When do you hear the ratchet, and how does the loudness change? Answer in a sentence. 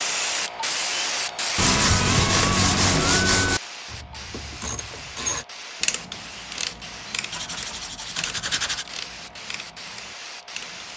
You can hear the ratchet from 3.9 to 10.9 s, getting quieter.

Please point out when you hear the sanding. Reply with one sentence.
The sanding can be heard from 1.6 to 3.6 s and from 7.3 to 8.9 s.